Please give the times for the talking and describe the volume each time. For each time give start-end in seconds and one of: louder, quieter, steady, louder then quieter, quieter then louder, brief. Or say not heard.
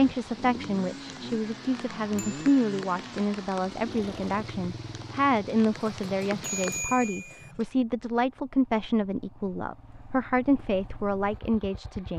0.0-12.1 steady.